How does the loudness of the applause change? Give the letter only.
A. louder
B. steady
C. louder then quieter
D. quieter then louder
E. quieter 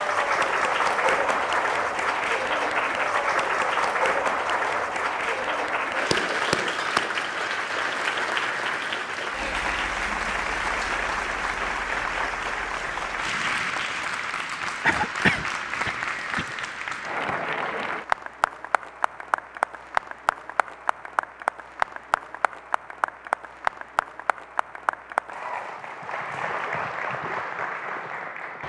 E.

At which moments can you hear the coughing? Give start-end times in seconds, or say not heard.
14.8-16.4.